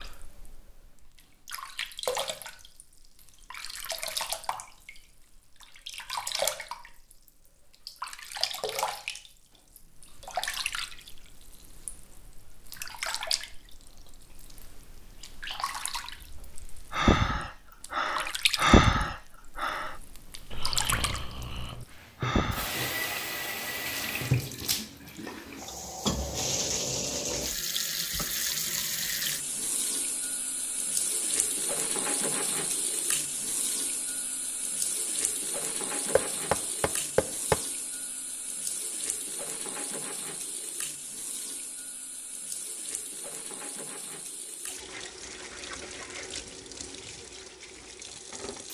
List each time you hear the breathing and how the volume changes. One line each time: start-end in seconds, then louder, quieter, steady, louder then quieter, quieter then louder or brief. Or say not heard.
16.9-22.7 louder then quieter.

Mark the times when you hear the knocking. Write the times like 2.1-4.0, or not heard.
36.1-37.6.